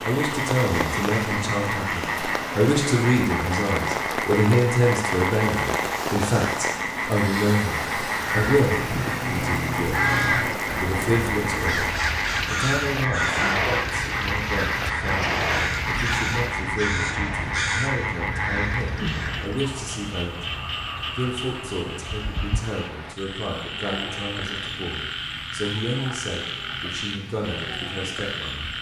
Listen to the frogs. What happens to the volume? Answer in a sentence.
The loudness of the frogs stays about the same.